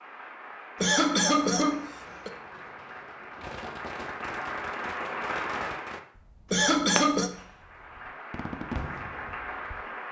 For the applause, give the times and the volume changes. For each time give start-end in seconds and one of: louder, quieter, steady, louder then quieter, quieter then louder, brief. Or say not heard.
0.0-6.0 louder
7.5-10.0 brief.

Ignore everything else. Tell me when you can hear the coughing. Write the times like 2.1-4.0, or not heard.
0.8-2.3, 6.5-7.3.